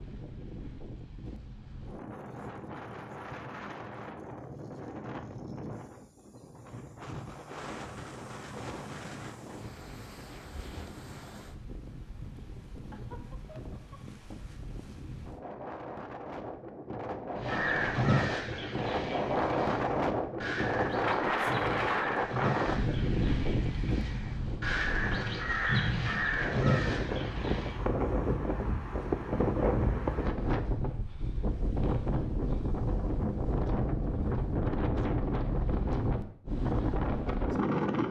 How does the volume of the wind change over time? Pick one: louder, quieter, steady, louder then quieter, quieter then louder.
louder.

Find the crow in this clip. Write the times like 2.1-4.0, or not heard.
17.4-27.8.